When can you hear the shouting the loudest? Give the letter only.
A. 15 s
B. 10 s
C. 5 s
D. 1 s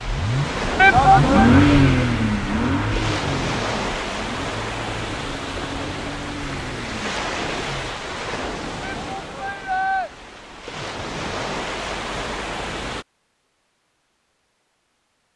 D.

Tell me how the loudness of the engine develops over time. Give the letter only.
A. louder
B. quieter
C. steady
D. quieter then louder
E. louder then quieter
B.